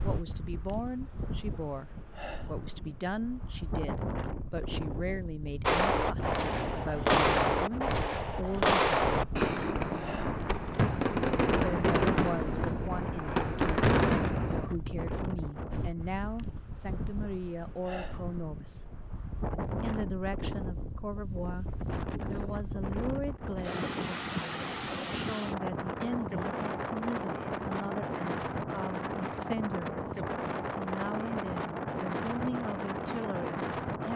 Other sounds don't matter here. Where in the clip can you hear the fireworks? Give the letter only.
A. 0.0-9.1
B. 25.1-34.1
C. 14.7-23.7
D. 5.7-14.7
D.